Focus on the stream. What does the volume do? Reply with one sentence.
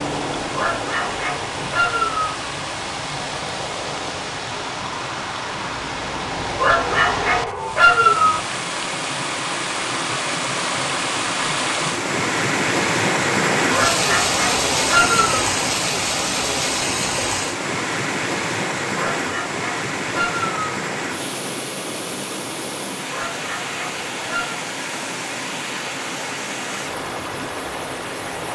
The volume of the stream goes up, then down.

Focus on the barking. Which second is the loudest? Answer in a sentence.
The volume of the barking peaks at 8 seconds.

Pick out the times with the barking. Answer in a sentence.
The barking can be heard from 0.5 to 2.4 s, from 6.5 to 8.4 s, from 13.7 to 15.4 s, from 18.9 to 20.6 s and from 23.1 to 24.6 s.